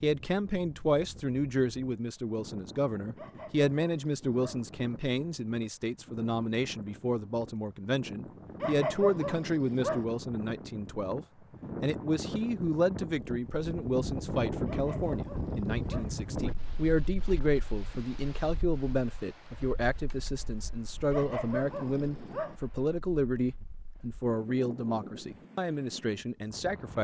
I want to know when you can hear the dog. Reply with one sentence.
The dog can be heard from 3.1 to 4.7 s, from 8.6 to 10.1 s, from 14.7 to 16.1 s and from 21.1 to 22.6 s.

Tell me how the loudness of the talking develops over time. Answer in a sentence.
The volume of the talking stays about the same.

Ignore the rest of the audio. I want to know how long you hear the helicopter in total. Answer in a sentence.
The helicopter can't be heard in this clip.